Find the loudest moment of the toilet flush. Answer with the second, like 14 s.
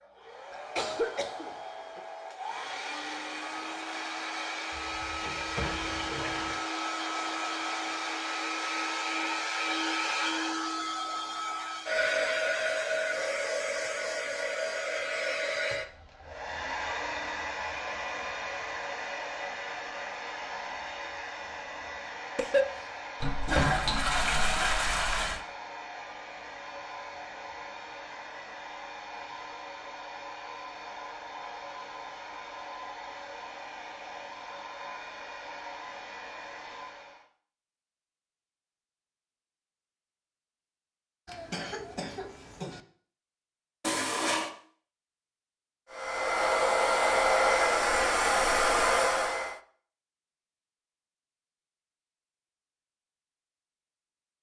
24 s.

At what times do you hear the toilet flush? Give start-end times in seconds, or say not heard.
4.7-6.6, 23.2-25.4, 43.8-44.5.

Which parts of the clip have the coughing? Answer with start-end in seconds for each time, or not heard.
0.5-2.0, 22.4-22.9, 41.2-42.8.